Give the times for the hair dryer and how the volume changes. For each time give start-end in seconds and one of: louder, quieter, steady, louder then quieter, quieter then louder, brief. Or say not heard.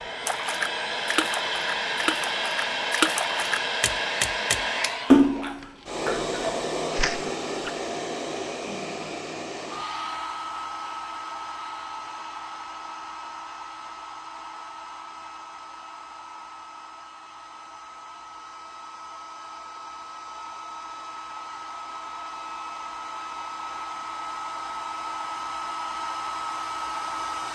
0.0-27.4 quieter then louder.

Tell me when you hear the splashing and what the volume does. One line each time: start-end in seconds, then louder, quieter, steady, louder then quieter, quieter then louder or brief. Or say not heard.
0.2-7.7 louder then quieter.